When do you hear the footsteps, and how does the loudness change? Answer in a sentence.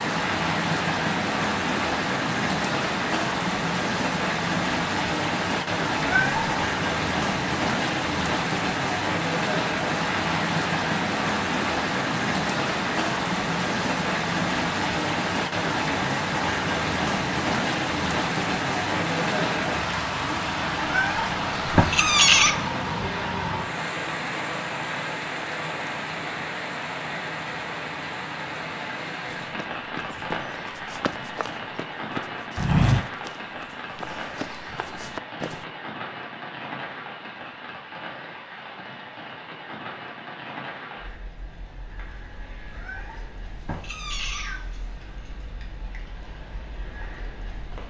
You can hear the footsteps from 29.4 to 35.6 s, getting louder then quieter.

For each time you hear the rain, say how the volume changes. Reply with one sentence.
The rain can be heard from 0.0 to 47.8 s, getting quieter.